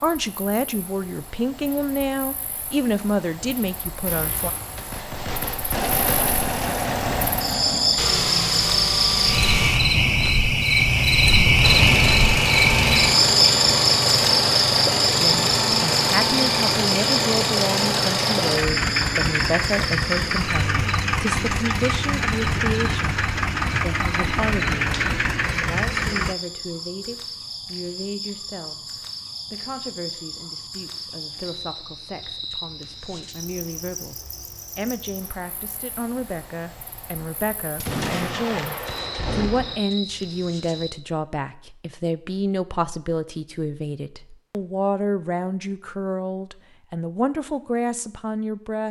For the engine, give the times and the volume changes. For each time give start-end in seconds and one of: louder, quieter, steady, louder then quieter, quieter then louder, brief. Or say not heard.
5.7-9.9 steady
11.6-26.4 steady.